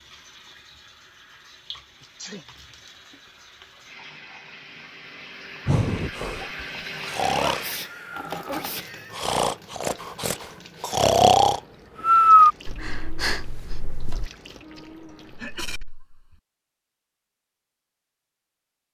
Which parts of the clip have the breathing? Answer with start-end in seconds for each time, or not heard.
5.7-14.3.